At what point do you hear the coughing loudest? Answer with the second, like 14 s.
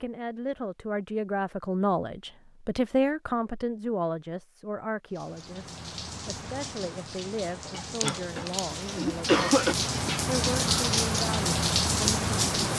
9 s.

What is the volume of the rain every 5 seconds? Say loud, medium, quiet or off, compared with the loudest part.
off, medium, loud.